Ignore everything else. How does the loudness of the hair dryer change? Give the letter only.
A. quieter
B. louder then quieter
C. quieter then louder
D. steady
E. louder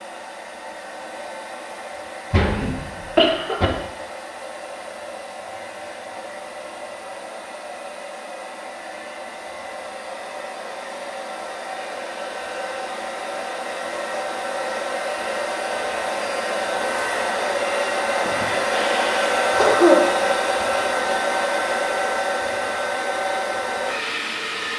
E.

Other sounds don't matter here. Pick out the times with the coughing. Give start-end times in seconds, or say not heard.
2.3-3.7, 18.2-20.1.